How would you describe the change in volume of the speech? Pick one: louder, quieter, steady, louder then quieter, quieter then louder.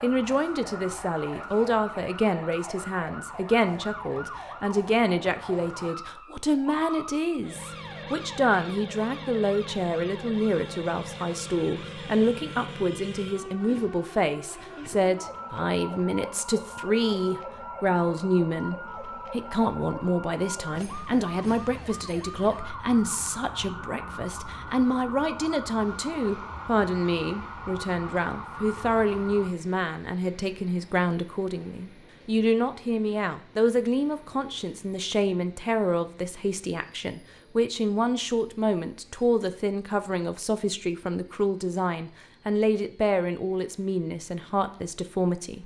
steady.